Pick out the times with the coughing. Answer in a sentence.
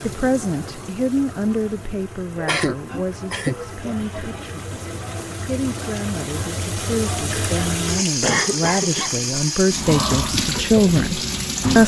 You can hear the coughing from 2.4 to 4.2 s and from 8.2 to 9.2 s.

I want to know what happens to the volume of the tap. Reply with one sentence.
The loudness of the tap goes up.